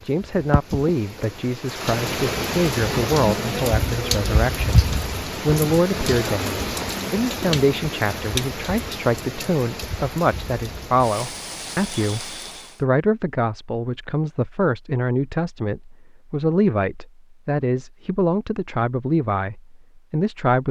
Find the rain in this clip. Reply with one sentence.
The rain can be heard from 0.0 to 12.8 s.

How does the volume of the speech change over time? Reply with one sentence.
The loudness of the speech stays about the same.